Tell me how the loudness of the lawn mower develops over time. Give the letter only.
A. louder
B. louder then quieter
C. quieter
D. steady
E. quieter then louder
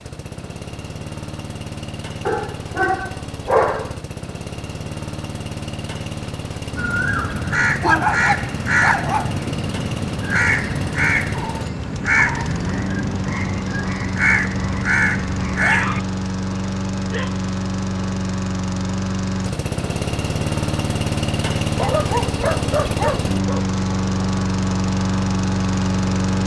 A.